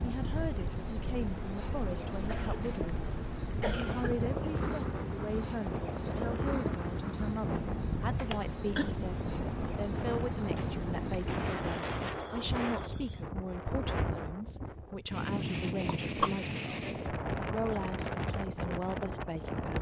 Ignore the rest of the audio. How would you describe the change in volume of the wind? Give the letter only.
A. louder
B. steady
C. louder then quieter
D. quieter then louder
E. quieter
A.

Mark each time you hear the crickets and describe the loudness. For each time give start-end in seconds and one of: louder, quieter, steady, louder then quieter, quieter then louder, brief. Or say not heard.
0.0-13.2 steady.